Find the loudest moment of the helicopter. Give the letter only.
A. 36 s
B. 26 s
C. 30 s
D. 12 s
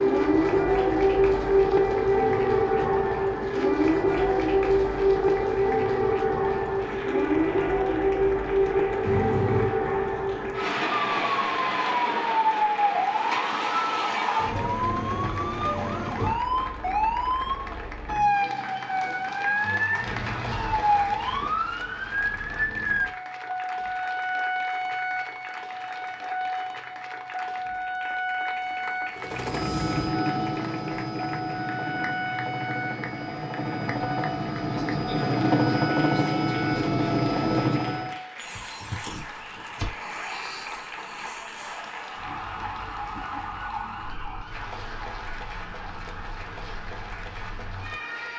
A.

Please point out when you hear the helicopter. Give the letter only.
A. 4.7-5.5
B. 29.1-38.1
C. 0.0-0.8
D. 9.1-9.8
B.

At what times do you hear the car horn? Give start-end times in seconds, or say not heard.
9.1-9.8.